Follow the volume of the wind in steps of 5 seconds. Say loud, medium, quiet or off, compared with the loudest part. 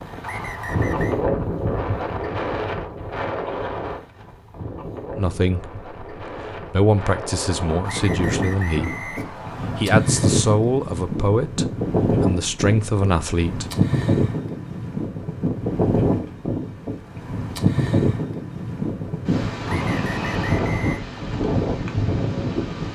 loud, medium, loud, loud, loud.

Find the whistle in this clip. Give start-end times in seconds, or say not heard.
0.2-1.1, 7.8-9.8, 19.6-21.0.